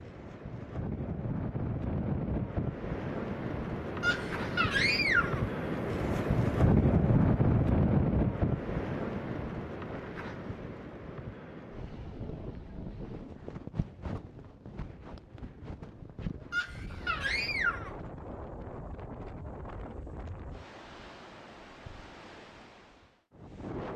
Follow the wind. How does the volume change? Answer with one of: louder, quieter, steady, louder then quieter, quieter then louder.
louder then quieter.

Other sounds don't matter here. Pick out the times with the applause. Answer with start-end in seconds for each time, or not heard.
not heard.